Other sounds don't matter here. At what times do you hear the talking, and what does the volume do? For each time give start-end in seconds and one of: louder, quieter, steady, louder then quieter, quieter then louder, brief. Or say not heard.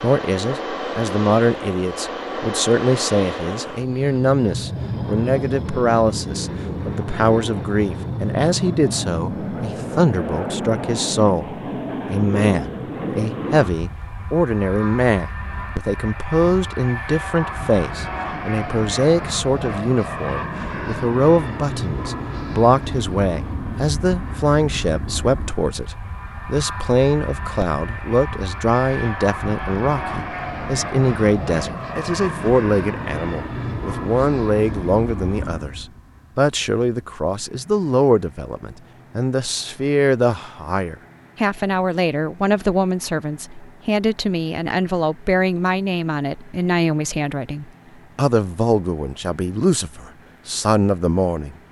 0.0-51.5 steady.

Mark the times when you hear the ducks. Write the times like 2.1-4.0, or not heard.
not heard.